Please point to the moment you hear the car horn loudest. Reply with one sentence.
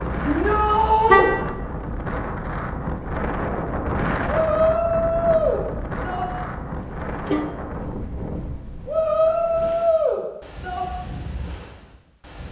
The volume of the car horn peaks at 1 second.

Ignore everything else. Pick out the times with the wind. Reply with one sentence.
You can hear the wind from 0.0 to 12.4 s.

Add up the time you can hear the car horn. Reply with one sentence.
You can hear the car horn for 2 seconds altogether.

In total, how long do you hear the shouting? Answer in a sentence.
The shouting can be heard for 5 seconds in total.